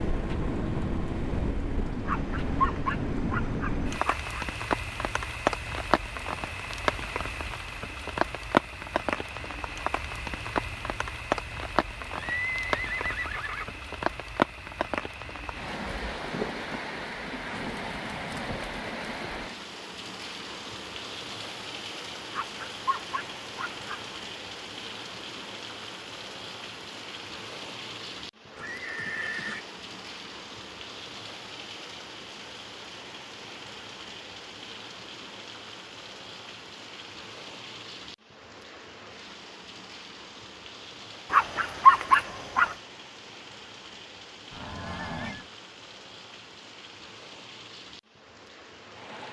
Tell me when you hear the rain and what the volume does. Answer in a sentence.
The rain can be heard from 0.0 to 49.2 s, getting quieter.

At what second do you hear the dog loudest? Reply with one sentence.
The volume of the dog peaks at 42 seconds.